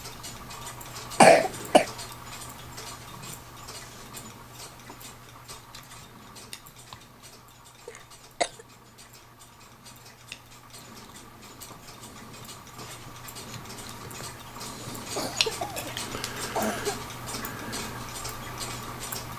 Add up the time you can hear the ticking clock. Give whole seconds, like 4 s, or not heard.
19 s.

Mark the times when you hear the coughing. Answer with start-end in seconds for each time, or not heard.
1.2-1.9, 7.8-8.5, 15.2-17.0.